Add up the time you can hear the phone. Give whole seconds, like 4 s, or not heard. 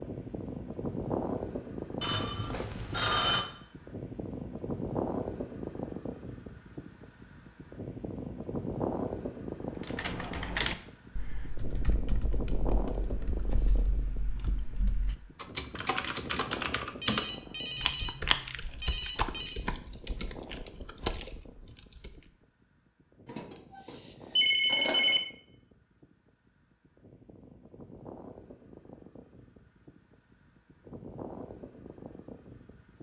6 s.